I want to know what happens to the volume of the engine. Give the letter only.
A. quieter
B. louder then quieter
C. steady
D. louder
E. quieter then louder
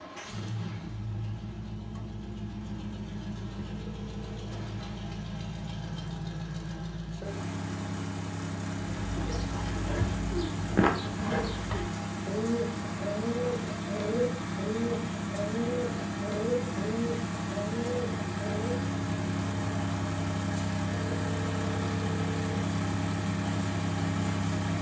D.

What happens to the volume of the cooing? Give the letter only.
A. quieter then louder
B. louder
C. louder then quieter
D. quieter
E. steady
E.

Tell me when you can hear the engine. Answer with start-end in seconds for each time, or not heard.
0.0-24.7.